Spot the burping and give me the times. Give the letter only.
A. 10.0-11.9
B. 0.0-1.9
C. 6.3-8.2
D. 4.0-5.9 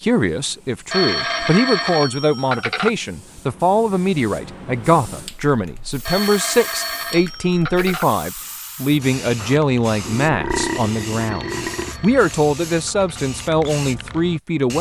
A.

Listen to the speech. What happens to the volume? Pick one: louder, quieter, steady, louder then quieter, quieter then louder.
steady.